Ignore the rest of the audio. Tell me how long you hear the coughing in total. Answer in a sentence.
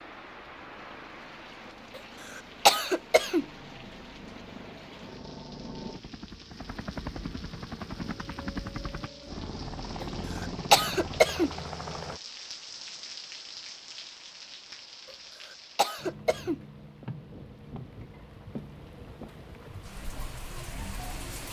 You can hear the coughing for 4 seconds altogether.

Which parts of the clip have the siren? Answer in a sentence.
You can't hear the siren here.